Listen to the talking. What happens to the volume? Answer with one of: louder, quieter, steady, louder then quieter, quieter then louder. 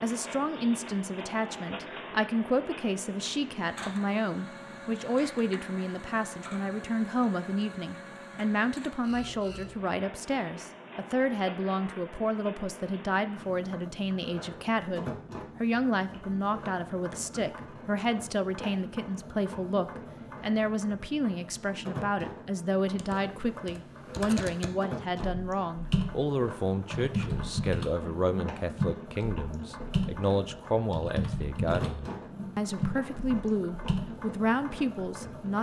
steady.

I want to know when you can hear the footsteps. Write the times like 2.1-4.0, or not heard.
not heard.